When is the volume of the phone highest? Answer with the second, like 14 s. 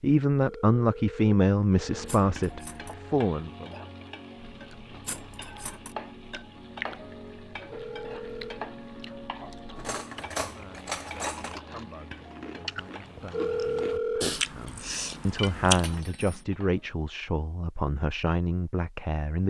14 s.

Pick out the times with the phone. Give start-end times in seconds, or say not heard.
0.5-2.1, 7.7-8.6, 13.3-14.2.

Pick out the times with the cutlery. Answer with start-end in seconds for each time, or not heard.
2.0-3.0, 5.0-6.0, 9.8-11.6, 15.8-16.4.